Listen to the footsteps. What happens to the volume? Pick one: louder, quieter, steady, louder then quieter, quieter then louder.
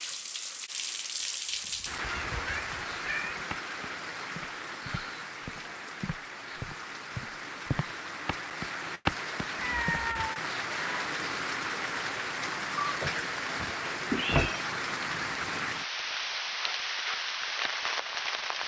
louder.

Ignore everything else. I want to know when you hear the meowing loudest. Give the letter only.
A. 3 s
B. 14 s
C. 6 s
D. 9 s
B.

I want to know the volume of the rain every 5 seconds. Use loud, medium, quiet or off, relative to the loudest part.
loud, medium, loud, loud.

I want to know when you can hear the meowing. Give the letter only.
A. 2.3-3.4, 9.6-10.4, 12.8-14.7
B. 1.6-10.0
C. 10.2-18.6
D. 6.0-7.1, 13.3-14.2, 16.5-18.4
A.